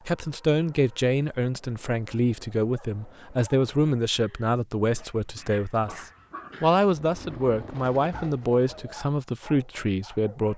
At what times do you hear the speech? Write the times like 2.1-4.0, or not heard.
0.1-10.5.